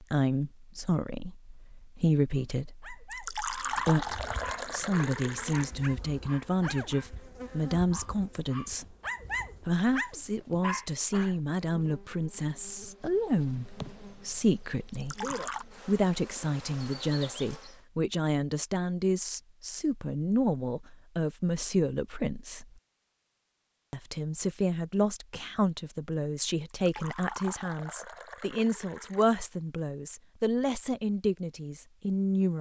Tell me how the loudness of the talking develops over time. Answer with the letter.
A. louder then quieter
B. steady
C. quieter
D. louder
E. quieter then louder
B.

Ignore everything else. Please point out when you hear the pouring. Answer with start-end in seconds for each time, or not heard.
3.1-5.7, 14.9-15.7, 26.7-29.4.